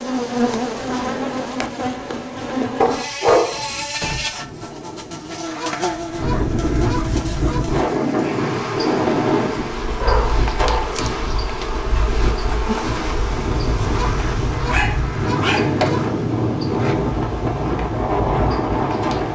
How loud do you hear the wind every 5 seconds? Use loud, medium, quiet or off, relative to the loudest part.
quiet, loud, medium, loud.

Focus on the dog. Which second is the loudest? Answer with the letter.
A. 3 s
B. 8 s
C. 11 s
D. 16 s
A.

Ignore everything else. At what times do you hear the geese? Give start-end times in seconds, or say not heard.
5.5-7.7, 13.8-16.1.